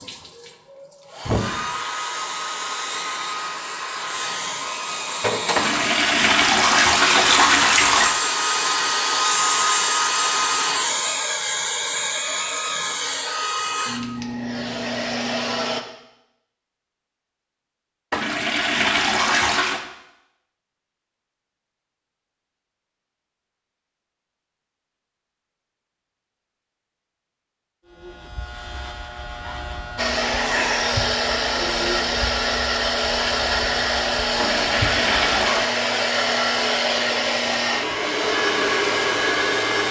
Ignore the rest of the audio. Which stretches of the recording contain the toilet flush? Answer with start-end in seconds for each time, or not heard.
5.5-8.2, 18.1-19.9, 34.4-35.7.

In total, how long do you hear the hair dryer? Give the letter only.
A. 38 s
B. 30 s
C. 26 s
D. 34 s
C.